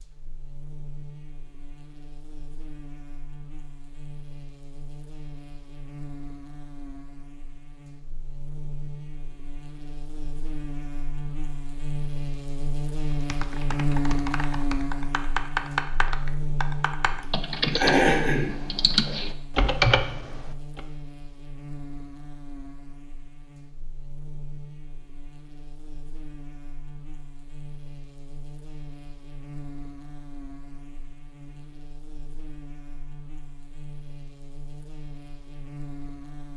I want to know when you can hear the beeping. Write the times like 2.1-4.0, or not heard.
not heard.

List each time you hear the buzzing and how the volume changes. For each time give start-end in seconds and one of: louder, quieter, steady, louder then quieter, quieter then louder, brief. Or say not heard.
0.0-36.5 louder then quieter.